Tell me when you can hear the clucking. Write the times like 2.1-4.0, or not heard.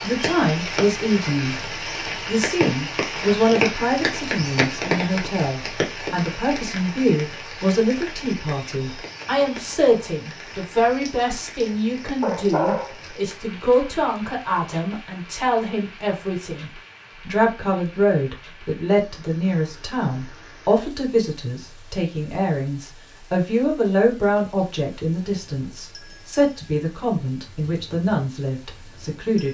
not heard.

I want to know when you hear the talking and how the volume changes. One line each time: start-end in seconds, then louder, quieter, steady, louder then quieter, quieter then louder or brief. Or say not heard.
0.0-29.5 steady.